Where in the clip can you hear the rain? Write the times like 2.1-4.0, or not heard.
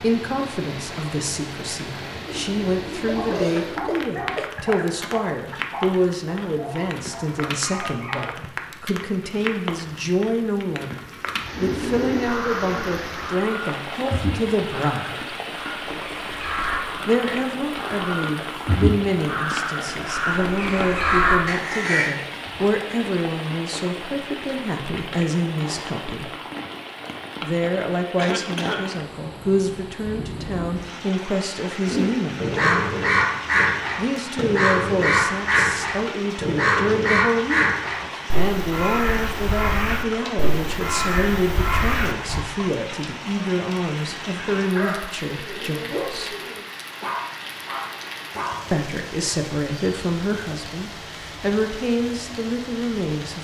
0.0-53.4.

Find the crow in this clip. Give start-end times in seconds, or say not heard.
11.5-22.1, 31.9-42.5.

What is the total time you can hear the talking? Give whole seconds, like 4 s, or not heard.
47 s.